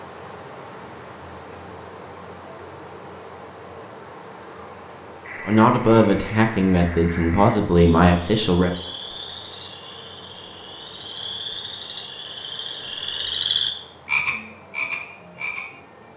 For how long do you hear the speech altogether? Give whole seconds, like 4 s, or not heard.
3 s.